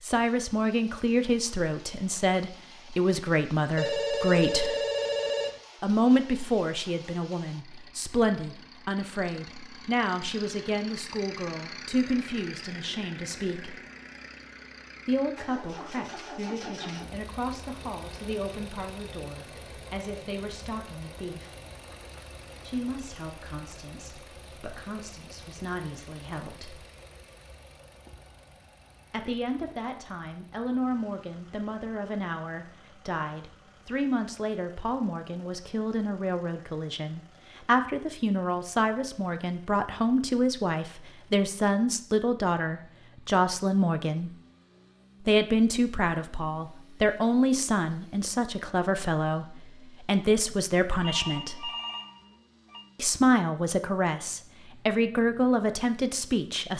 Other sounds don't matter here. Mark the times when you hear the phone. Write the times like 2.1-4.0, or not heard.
3.8-5.6, 50.5-52.9.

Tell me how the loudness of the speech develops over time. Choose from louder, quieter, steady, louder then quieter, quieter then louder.
quieter then louder.